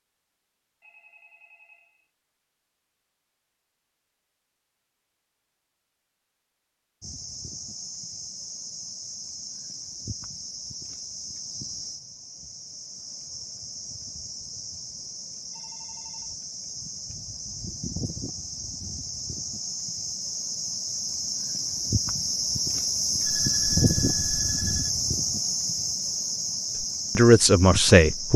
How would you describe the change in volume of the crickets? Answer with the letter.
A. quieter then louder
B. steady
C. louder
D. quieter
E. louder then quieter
C.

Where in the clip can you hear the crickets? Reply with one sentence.
The crickets can be heard from 7.0 to 28.3 s.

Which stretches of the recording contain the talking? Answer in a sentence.
The talking can be heard from 27.1 to 28.3 s.